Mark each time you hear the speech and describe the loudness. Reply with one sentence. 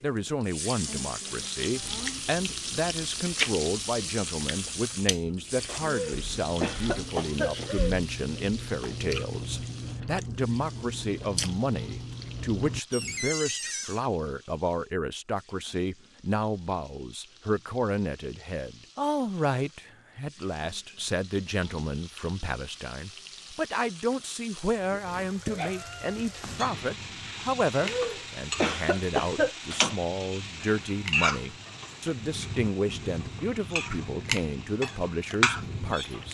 The speech can be heard from 0.0 to 36.3 s, at a steady volume.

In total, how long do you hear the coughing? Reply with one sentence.
You can hear the coughing for 4 seconds altogether.